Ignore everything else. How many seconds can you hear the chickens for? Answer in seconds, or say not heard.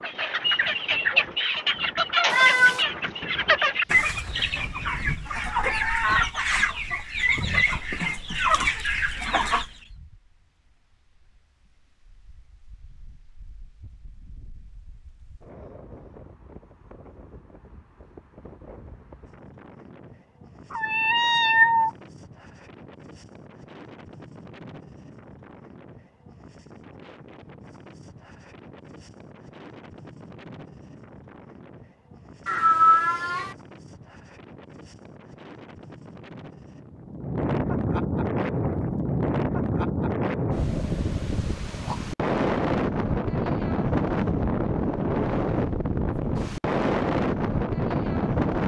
10 s.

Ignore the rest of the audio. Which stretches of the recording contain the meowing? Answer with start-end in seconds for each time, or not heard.
2.3-2.9, 20.7-21.9, 32.5-33.5.